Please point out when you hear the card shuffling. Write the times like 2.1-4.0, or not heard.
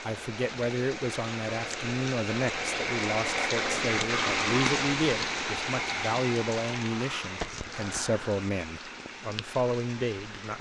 not heard.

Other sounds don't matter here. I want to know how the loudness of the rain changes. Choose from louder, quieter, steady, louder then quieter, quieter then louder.
louder then quieter.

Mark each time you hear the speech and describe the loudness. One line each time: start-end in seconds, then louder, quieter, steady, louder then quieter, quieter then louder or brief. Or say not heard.
0.0-10.5 steady.